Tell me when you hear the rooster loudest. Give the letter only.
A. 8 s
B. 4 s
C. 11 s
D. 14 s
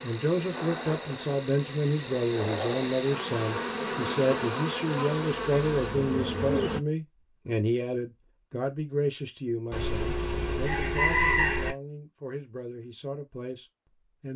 C.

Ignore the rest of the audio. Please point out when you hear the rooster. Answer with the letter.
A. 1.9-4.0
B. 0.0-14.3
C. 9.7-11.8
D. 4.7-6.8
C.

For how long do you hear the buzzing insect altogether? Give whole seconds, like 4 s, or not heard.
7 s.